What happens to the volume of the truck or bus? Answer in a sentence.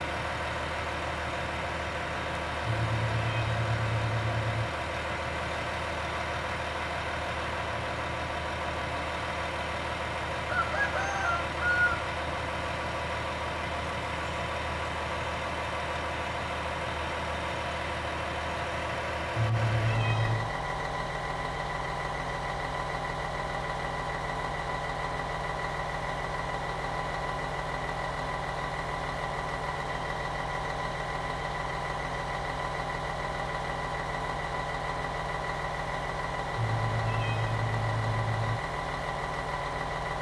The loudness of the truck or bus stays about the same.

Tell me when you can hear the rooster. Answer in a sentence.
You can hear the rooster from 10.5 to 12.0 s.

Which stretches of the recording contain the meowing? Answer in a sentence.
The meowing can be heard from 2.6 to 4.7 s, from 19.4 to 20.5 s and from 36.5 to 38.6 s.